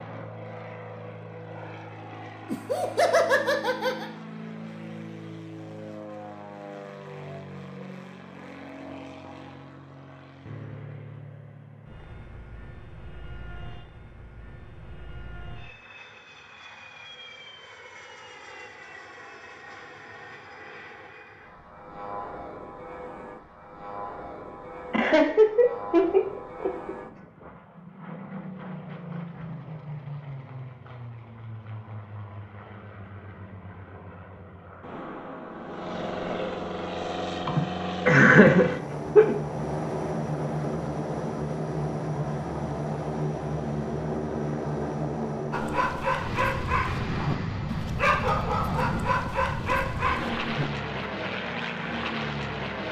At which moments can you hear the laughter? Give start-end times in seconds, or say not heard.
2.5-4.0, 24.9-26.9, 37.5-39.3.